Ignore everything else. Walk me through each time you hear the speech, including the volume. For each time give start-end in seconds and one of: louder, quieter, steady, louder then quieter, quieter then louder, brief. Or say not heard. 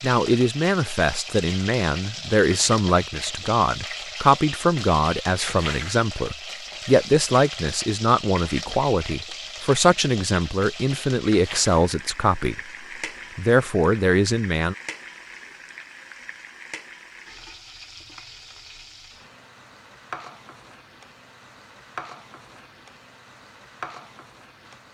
0.0-12.6 steady
13.3-14.8 brief.